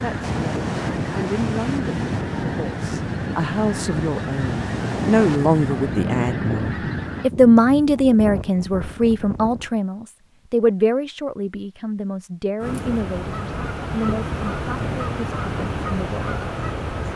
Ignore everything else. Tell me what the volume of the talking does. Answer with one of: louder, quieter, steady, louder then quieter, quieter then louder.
louder then quieter.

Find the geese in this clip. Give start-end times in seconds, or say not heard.
0.0-7.3, 12.6-17.1.